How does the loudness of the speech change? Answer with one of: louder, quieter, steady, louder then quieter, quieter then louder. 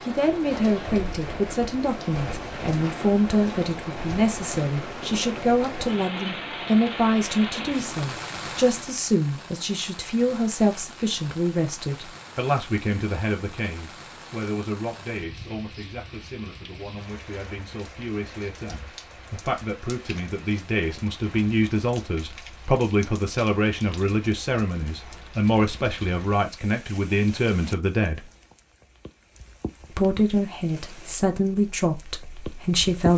quieter then louder.